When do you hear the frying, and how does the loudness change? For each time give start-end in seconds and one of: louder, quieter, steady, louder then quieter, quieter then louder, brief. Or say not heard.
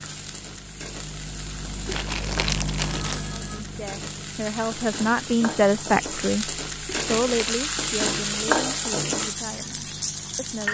0.0-10.6 louder.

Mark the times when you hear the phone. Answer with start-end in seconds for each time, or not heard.
2.8-3.6.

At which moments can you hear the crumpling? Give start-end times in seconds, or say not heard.
1.9-3.2, 6.8-7.7.